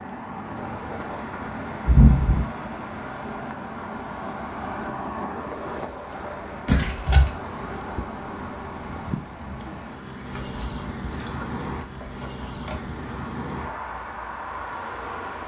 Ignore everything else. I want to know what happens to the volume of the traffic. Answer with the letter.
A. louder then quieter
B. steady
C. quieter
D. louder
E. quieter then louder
B.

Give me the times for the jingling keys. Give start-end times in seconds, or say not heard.
1.9-2.5, 6.7-7.3, 10.4-12.9.